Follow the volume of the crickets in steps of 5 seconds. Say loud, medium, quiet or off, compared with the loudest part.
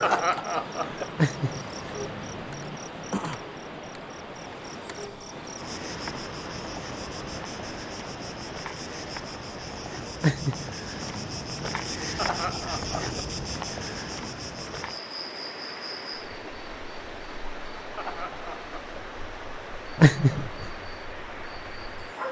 medium, medium, loud, medium, medium.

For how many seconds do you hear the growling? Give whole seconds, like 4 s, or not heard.
4 s.